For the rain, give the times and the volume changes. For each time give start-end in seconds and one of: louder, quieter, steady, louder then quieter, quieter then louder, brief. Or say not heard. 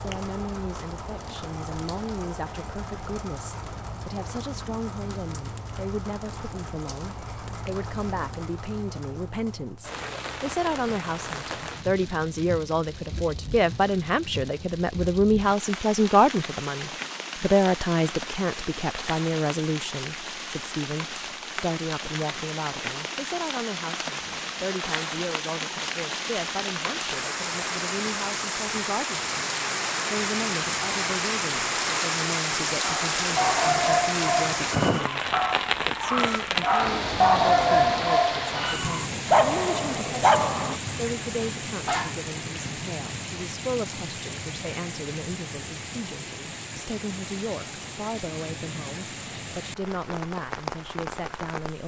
0.0-51.8 louder then quieter.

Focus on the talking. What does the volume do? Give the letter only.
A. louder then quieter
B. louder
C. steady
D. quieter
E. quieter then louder
A.